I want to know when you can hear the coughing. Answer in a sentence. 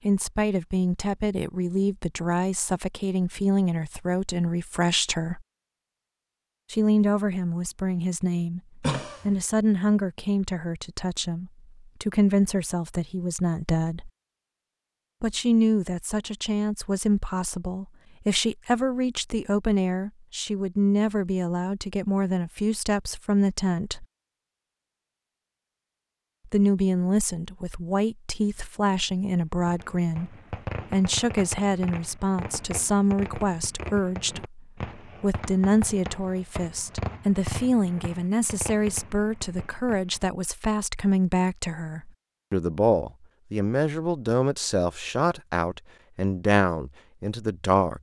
You can hear the coughing from 8.8 to 9.4 s.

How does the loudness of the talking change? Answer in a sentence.
The loudness of the talking stays about the same.